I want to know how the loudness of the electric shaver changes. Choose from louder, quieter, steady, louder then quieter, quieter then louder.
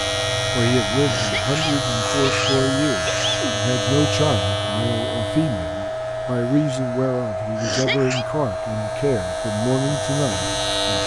quieter then louder.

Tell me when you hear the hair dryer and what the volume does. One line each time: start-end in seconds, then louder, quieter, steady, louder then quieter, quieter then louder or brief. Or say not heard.
0.0-11.0 steady.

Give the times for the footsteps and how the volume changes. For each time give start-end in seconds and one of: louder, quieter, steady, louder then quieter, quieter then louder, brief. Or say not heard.
not heard.